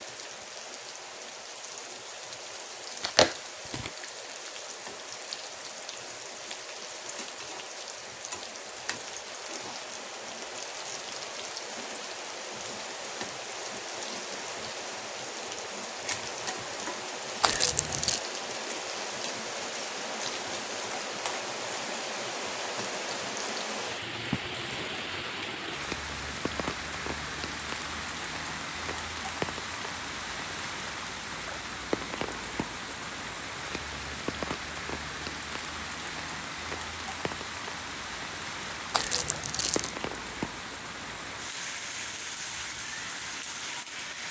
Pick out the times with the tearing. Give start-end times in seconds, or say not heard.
3.0-3.9, 17.4-18.2, 38.9-40.0.